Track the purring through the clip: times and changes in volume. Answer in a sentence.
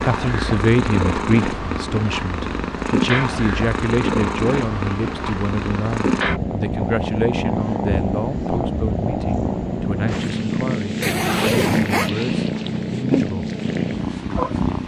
You can hear the purring from 0.0 to 14.8 s, at a steady volume.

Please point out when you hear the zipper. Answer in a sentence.
You can hear the zipper from 11.0 to 12.1 s.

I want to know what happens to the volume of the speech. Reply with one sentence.
The loudness of the speech goes down.